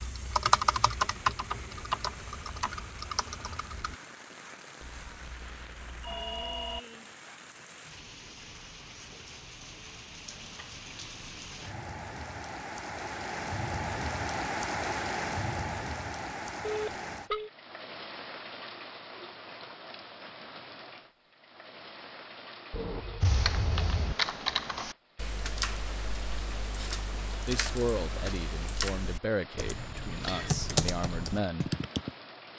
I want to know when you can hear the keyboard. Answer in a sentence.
You can hear the keyboard from 0.0 to 4.0 s and from 23.2 to 32.1 s.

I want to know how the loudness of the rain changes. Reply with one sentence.
The loudness of the rain goes up, then down.